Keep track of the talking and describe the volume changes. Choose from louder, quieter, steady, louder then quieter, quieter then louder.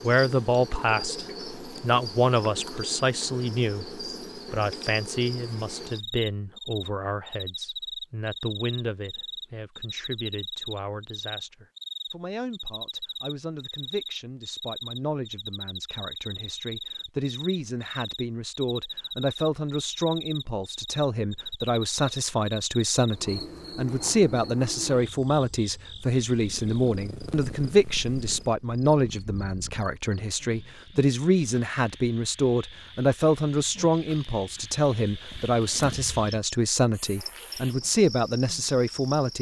quieter then louder.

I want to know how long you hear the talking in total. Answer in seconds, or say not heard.
39 s.